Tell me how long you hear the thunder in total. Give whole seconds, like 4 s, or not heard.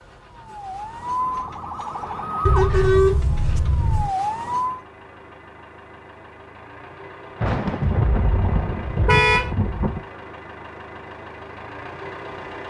3 s.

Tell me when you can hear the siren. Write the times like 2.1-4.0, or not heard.
0.0-4.8.